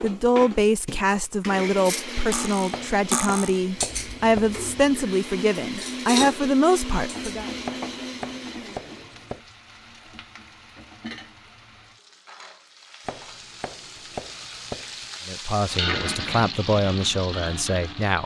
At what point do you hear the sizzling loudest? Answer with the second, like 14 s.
16 s.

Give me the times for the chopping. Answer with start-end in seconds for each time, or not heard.
2.7-4.5, 7.7-9.4, 13.1-15.1.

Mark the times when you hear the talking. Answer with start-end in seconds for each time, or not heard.
0.0-7.5, 15.2-18.2.